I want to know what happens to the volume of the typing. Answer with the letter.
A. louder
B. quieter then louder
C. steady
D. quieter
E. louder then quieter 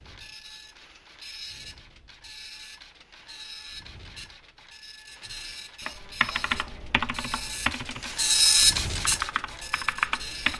B.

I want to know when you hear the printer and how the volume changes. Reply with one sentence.
You can hear the printer from 0.0 to 10.5 s, getting louder.